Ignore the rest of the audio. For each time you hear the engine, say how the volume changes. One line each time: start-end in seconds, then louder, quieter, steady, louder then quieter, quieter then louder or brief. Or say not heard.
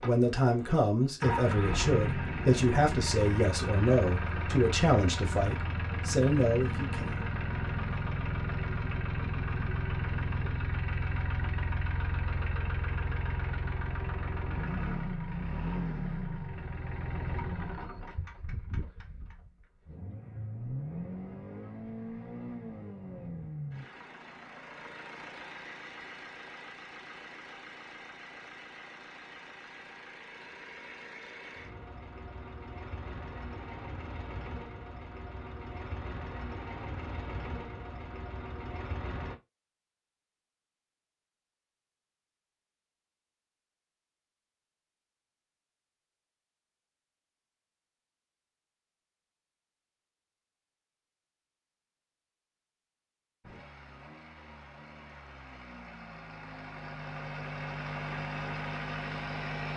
0.0-39.4 quieter
53.4-59.7 louder.